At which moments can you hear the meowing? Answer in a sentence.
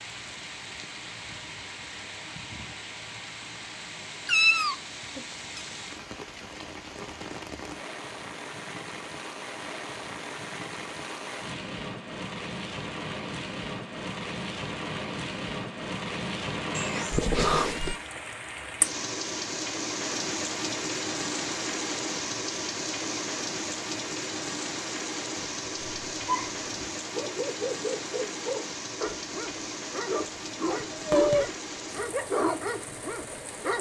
You can hear the meowing from 4.2 to 5.6 s, from 16.8 to 18.0 s and from 30.6 to 31.5 s.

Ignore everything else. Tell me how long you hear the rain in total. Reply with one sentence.
The rain can be heard for 34 seconds in total.